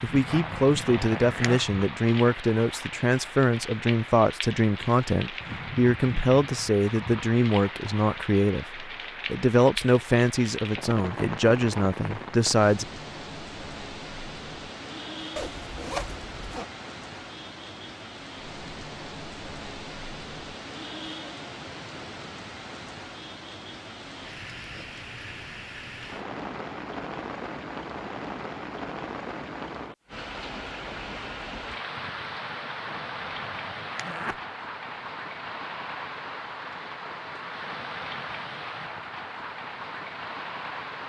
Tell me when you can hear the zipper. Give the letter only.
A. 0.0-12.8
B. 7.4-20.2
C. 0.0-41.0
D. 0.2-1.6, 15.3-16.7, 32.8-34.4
D.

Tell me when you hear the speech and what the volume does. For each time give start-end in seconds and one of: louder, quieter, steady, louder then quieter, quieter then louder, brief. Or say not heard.
0.0-12.8 steady.